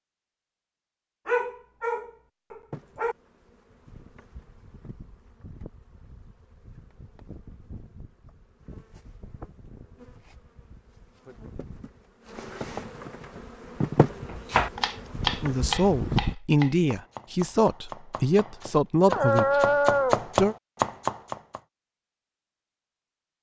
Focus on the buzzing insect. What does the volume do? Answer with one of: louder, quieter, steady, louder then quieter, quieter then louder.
louder.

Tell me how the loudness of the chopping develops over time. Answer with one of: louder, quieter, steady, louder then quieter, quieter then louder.
quieter then louder.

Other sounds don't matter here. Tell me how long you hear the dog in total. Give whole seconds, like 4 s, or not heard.
3 s.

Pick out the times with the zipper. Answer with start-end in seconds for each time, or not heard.
not heard.